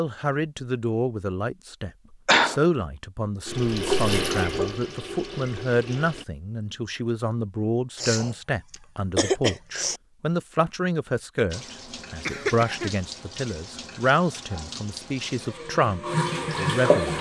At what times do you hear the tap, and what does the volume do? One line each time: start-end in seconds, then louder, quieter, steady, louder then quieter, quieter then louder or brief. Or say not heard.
3.5-6.2 brief
11.5-17.1 louder.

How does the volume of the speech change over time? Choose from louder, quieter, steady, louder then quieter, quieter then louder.
steady.